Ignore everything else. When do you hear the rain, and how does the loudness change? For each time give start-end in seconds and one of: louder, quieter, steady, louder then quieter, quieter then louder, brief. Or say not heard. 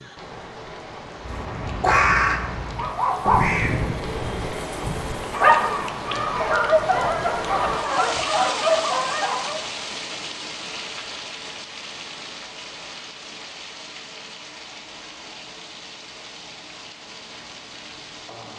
0.0-18.5 louder then quieter.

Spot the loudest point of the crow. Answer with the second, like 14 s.
2 s.